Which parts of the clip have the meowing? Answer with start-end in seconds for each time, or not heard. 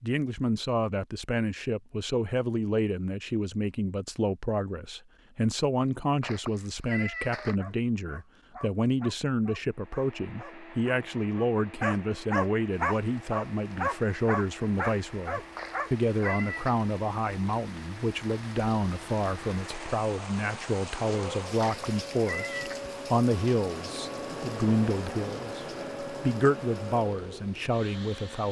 6.2-7.5, 15.6-16.8, 21.6-22.9.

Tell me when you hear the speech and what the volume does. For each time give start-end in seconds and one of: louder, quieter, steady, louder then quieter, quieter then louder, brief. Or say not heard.
0.0-28.4 steady.